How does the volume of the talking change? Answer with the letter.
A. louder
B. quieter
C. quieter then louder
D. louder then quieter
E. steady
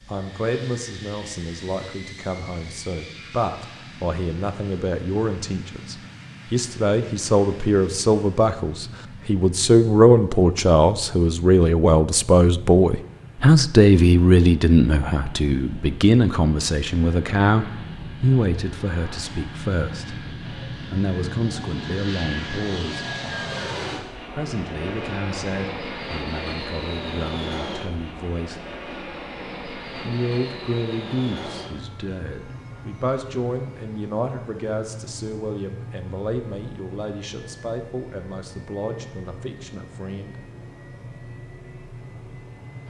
D.